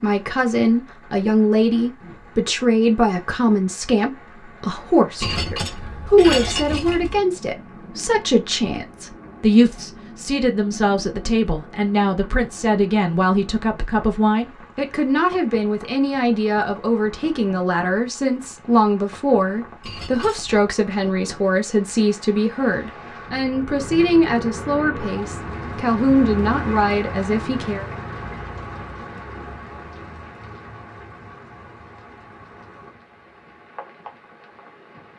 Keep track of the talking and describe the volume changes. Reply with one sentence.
The volume of the talking stays about the same.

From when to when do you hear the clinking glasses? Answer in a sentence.
The clinking glasses can be heard from 5.2 to 7.2 s and from 19.8 to 20.6 s.